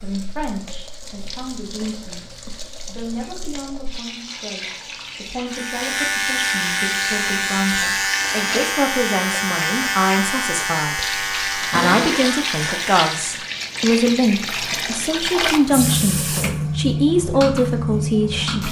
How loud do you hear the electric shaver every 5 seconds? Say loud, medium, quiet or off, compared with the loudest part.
off, loud, loud, off.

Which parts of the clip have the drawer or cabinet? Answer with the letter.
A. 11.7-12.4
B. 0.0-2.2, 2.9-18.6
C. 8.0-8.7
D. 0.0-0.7
A.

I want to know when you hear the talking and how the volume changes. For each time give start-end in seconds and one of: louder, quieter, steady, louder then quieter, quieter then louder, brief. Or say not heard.
0.0-2.2 brief
2.9-18.6 louder.